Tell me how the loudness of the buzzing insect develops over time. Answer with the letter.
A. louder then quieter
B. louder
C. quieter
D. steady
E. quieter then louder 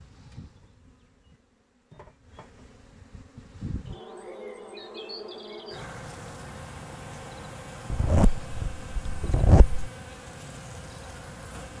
B.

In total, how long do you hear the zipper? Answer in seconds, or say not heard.
2 s.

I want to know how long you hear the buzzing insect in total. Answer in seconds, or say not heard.
12 s.